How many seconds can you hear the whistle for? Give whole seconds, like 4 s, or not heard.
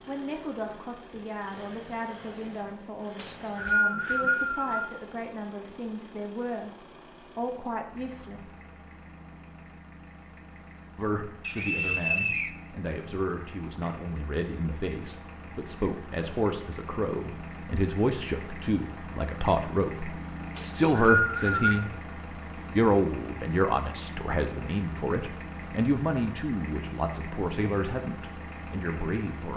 4 s.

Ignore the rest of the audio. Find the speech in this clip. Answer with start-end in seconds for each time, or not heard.
0.1-8.6, 10.9-21.9, 22.8-29.5.